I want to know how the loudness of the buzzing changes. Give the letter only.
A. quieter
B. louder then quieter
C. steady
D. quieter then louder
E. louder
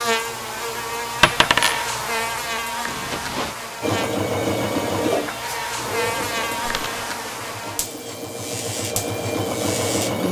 A.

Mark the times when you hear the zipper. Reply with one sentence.
The zipper can be heard from 2.9 to 3.5 s.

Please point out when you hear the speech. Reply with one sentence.
The speech can't be heard in this clip.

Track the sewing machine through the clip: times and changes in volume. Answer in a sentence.
You can hear the sewing machine from 3.8 to 10.2 s, getting quieter then louder.